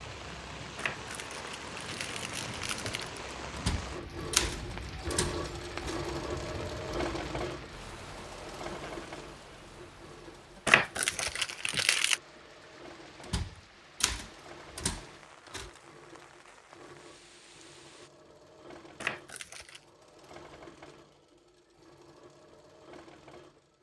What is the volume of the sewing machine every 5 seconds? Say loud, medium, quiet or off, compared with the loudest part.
medium, loud, quiet, quiet, quiet.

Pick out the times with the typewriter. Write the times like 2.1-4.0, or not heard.
3.5-6.0, 13.2-15.7.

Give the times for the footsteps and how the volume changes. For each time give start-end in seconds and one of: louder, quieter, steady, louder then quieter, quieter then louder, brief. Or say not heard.
not heard.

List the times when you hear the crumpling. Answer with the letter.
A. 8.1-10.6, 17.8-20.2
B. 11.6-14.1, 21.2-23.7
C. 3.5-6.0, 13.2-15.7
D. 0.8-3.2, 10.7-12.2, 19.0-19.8
D.